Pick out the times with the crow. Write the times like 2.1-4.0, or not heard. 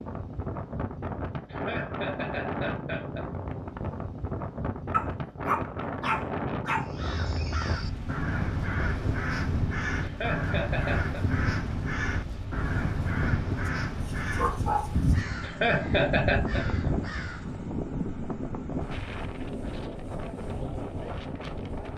6.8-17.6.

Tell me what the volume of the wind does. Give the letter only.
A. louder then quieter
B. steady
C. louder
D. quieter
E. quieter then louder
B.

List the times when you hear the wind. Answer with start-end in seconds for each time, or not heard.
0.0-21.9.